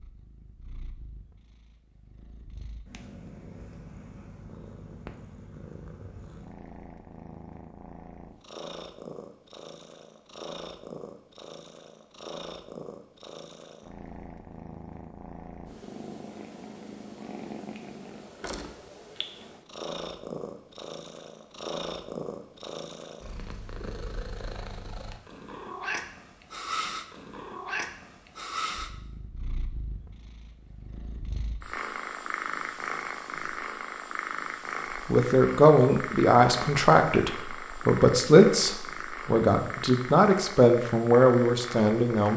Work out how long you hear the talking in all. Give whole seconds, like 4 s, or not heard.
7 s.